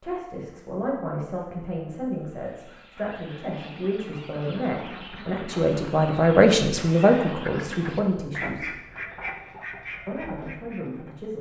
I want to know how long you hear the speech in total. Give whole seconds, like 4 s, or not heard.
10 s.